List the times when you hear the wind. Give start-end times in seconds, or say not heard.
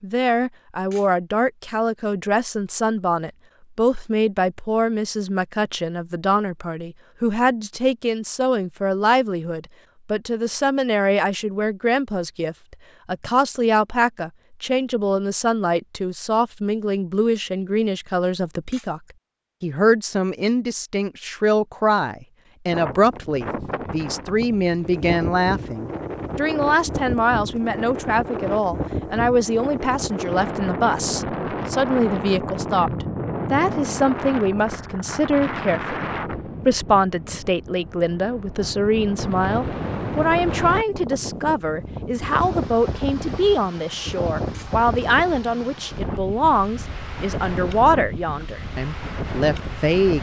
22.6-50.1.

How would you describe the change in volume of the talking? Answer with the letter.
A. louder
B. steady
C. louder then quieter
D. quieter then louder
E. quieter
B.